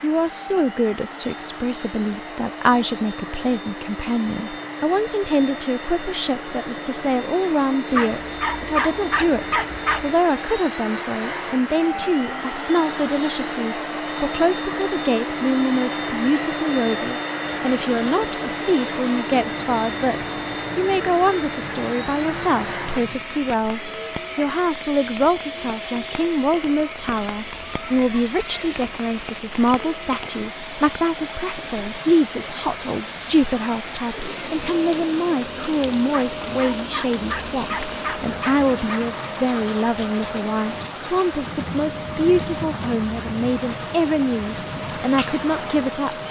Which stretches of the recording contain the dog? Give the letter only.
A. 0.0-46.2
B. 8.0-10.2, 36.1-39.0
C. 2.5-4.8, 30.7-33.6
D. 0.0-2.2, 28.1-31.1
B.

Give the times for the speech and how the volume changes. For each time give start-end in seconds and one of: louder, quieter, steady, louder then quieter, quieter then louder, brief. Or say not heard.
0.0-46.2 steady.